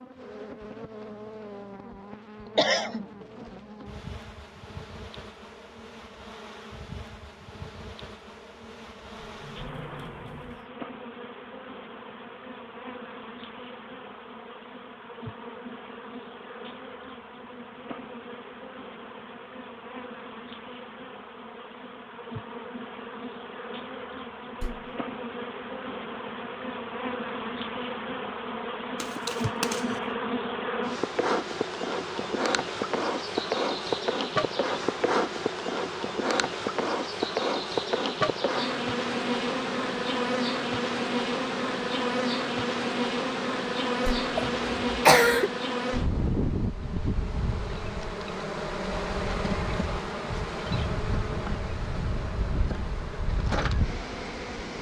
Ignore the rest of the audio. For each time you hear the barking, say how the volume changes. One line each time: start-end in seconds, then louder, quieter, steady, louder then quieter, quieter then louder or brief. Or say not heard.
not heard.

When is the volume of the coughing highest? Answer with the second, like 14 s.
45 s.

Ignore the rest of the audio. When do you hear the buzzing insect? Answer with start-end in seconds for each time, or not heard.
0.0-54.7.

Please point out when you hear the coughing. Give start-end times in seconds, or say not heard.
2.5-3.0, 29.0-30.0, 44.4-45.5.